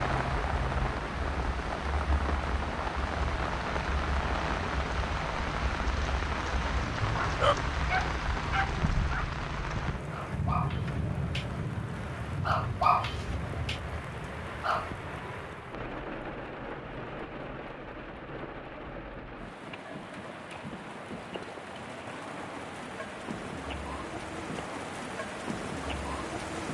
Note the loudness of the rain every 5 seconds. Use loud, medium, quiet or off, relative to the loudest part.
loud, loud, loud, medium, medium, loud.